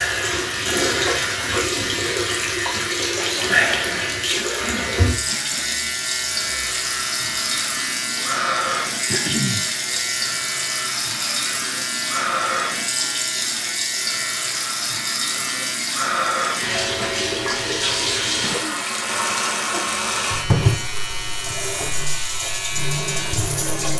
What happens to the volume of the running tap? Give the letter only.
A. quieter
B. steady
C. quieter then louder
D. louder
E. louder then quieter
B.